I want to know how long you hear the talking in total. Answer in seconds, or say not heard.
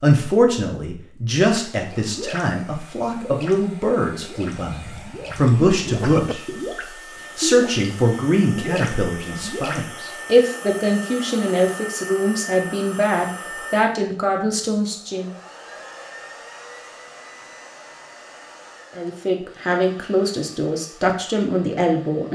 18 s.